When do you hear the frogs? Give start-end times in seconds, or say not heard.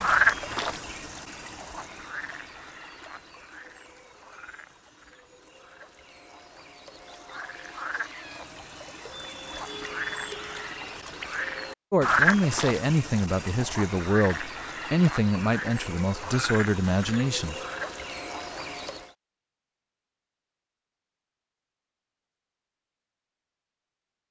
0.0-19.1.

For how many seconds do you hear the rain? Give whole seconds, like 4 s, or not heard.
not heard.